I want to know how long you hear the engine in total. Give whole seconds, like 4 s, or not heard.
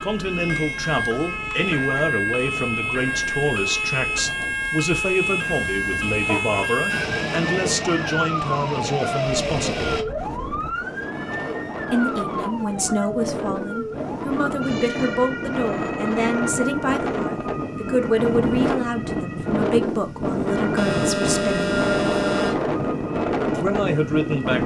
3 s.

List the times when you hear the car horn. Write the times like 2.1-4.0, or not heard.
5.7-6.6, 20.8-22.6.